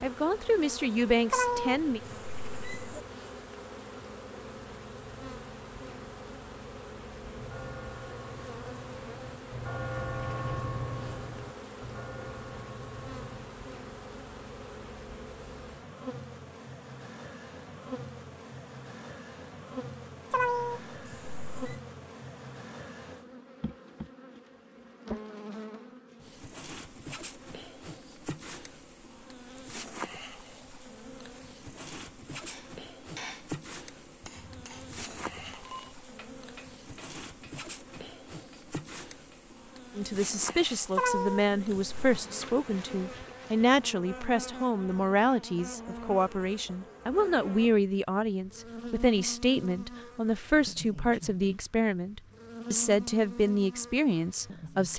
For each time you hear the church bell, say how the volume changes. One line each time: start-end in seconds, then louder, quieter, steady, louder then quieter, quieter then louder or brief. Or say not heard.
7.3-13.5 louder then quieter.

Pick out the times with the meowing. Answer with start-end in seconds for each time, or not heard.
1.3-3.0, 20.3-21.8, 41.0-42.2.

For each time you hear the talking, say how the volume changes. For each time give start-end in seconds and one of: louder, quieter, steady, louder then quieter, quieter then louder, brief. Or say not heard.
0.0-2.0 brief
40.0-54.9 steady.